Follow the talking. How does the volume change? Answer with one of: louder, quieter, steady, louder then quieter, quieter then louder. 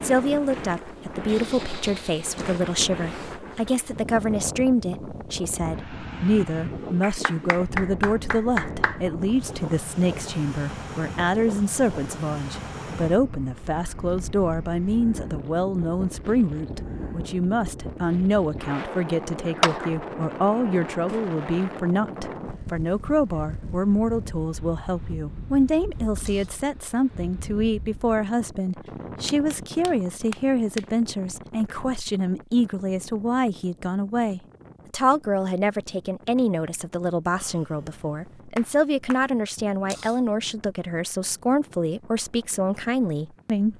steady.